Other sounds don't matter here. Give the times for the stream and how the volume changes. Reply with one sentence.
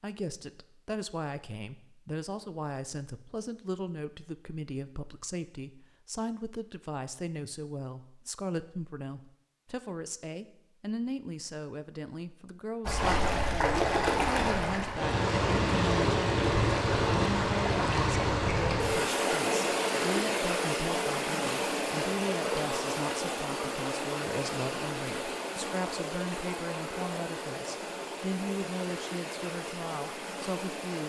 The stream can be heard from 12.8 to 31.0 s, getting quieter.